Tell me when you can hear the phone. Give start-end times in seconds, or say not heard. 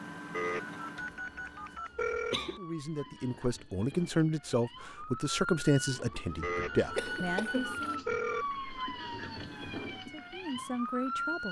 0.3-2.4, 6.4-8.4.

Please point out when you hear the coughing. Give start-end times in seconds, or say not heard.
0.9-2.6, 7.0-8.0.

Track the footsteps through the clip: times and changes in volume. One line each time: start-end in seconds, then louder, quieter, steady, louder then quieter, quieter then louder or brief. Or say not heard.
not heard.